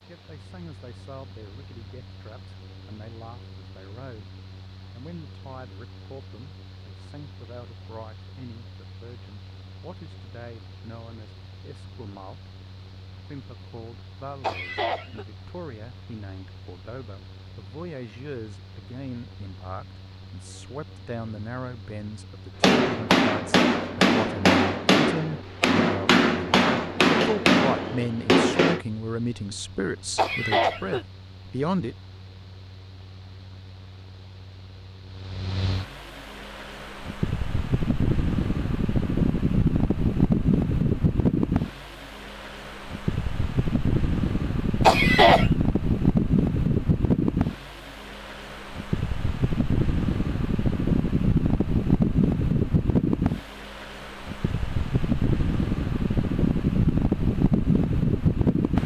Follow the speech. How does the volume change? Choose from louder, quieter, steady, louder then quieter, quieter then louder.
louder.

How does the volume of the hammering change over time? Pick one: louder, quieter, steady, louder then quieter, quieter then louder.
steady.